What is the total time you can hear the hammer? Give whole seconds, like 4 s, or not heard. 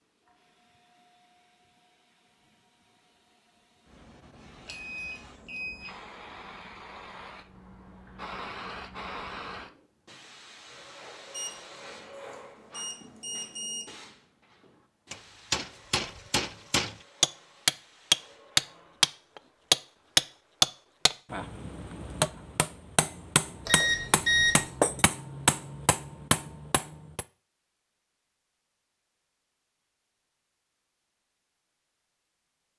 12 s.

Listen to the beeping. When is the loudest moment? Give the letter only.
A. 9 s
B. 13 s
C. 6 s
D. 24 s
D.